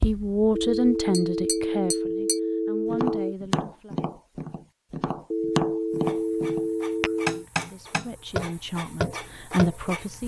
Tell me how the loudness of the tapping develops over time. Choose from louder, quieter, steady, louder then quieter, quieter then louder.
louder.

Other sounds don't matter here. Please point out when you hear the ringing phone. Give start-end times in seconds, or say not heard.
0.5-3.4, 5.3-7.5.